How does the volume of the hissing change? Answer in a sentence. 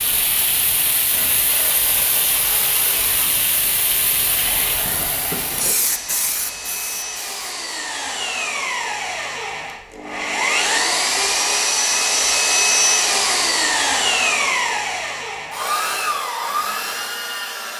The loudness of the hissing stays about the same.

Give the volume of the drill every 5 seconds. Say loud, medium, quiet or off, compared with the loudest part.
quiet, medium, loud, medium.